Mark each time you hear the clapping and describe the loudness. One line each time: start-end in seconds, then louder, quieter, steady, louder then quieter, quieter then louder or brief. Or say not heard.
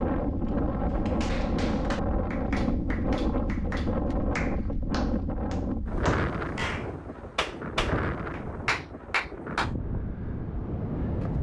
0.9-9.7 louder.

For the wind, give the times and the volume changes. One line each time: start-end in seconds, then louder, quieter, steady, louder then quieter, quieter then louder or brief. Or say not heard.
0.0-11.3 quieter.